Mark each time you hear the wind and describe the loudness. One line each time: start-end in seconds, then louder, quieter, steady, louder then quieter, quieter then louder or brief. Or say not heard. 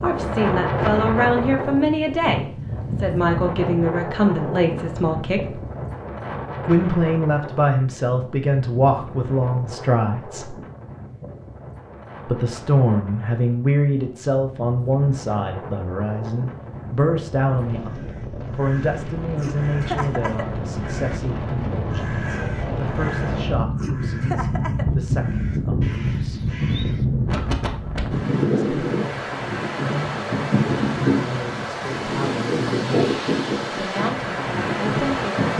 0.0-35.5 quieter then louder.